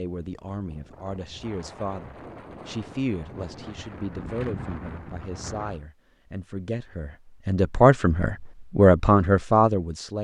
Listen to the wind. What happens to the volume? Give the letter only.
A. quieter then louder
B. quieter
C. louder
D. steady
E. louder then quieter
C.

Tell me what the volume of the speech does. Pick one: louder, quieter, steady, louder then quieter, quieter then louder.
louder.